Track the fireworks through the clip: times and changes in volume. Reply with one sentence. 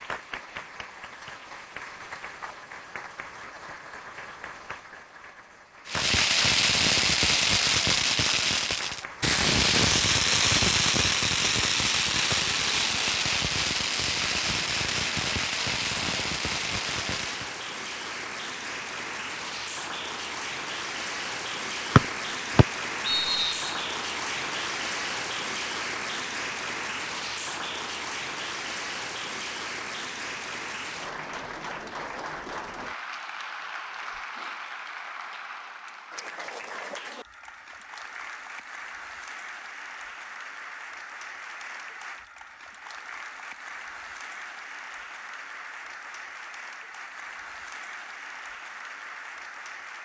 You can hear the fireworks from 5.8 to 17.5 s, getting quieter.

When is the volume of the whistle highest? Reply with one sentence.
The loudest moment of the whistle is at 22 seconds.